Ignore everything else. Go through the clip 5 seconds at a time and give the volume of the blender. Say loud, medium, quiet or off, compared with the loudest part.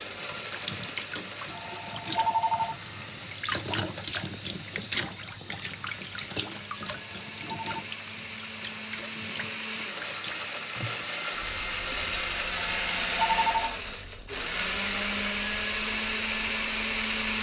quiet, medium, loud, loud.